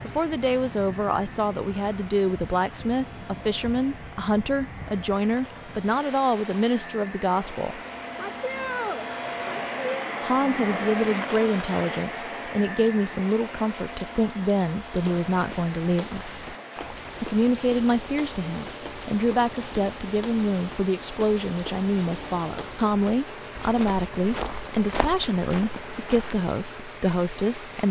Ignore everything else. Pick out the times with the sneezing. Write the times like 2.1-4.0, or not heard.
8.2-10.1.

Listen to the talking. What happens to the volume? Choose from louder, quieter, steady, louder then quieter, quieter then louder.
steady.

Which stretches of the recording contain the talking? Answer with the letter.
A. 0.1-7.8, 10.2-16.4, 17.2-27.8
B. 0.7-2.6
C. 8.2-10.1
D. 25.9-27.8
A.